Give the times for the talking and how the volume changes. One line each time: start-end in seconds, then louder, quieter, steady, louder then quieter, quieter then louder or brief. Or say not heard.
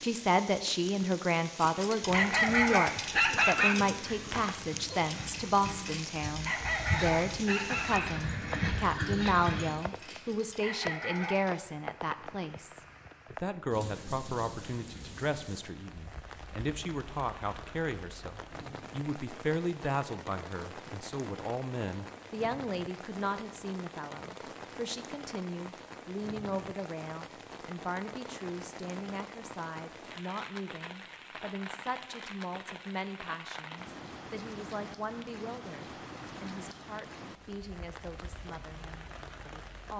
0.0-39.9 quieter.